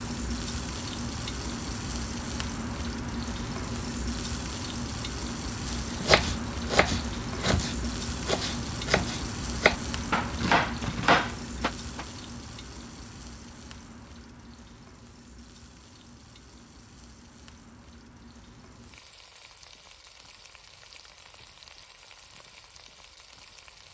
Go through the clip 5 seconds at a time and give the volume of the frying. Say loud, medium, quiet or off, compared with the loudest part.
loud, loud, medium, quiet, quiet.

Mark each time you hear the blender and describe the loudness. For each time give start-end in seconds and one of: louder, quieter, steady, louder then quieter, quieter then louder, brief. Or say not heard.
not heard.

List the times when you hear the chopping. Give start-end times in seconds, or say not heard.
5.8-12.1.